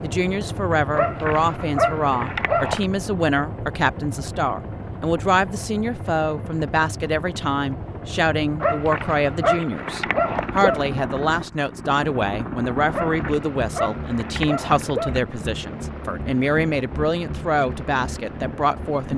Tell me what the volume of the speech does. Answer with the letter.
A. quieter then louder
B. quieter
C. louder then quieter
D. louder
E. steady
E.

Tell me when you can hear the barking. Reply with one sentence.
The barking can be heard from 0.9 to 2.9 s, from 8.6 to 10.8 s and from 12.9 to 15.2 s.